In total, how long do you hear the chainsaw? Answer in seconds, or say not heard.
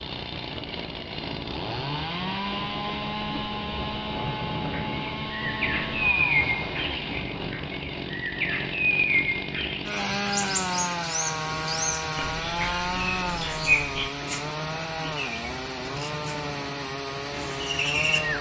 18 s.